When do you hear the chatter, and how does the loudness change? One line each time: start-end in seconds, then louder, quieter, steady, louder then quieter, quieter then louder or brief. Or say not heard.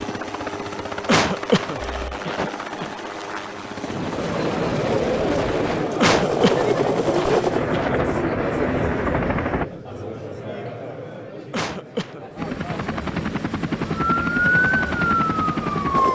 4.0-15.9 quieter.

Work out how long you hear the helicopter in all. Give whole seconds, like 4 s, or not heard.
13 s.